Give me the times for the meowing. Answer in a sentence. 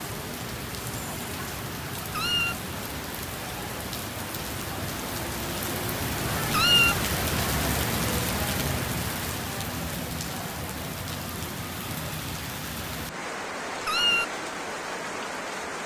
The meowing can be heard from 2.1 to 2.5 s, from 6.5 to 7.0 s and from 13.8 to 14.2 s.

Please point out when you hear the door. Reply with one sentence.
The door can't be heard in this clip.